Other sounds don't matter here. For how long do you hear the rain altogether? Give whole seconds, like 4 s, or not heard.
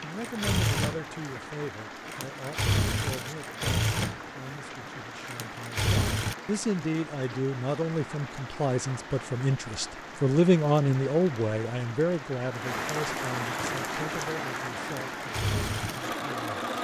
17 s.